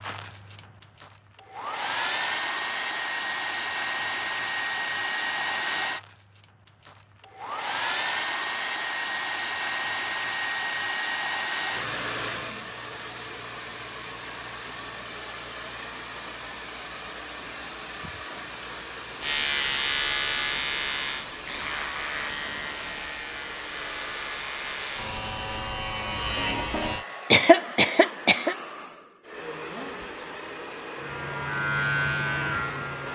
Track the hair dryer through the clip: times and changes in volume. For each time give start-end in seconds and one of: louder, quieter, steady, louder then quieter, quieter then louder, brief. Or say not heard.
0.0-33.1 quieter.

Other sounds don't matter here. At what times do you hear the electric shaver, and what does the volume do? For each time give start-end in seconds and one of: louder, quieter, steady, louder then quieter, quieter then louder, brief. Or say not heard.
19.2-27.1 quieter then louder
30.9-33.1 brief.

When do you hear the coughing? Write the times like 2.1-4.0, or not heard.
27.3-28.6.